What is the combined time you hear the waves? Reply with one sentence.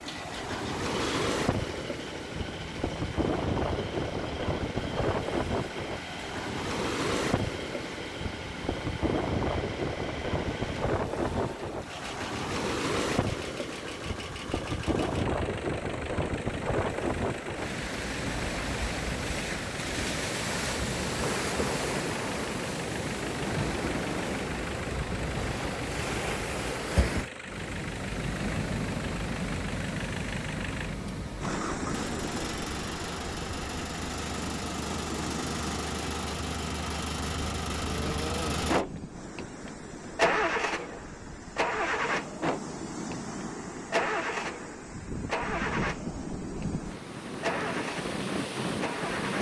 The waves can be heard for 49 seconds in total.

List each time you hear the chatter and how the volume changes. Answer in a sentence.
You can't hear the chatter here.